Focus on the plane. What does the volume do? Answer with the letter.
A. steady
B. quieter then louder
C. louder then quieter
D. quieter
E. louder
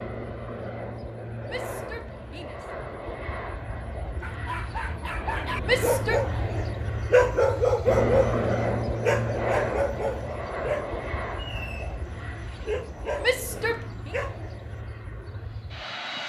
C.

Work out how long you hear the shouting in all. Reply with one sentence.
The shouting can be heard for 3 seconds in total.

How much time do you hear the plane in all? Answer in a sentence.
You can hear the plane for 16 seconds altogether.